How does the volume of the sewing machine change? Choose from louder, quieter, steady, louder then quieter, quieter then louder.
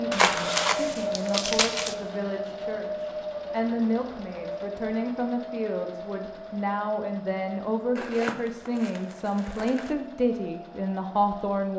quieter.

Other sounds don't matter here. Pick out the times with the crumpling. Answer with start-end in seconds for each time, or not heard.
0.1-1.9, 8.0-9.9.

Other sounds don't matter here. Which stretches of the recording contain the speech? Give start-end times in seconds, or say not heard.
0.0-11.7.